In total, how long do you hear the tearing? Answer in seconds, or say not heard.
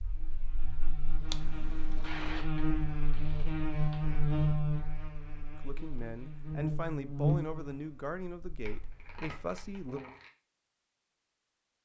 4 s.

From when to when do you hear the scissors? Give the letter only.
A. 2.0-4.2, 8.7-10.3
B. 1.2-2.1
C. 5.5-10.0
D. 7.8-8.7
B.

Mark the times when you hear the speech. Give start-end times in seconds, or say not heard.
5.5-10.0.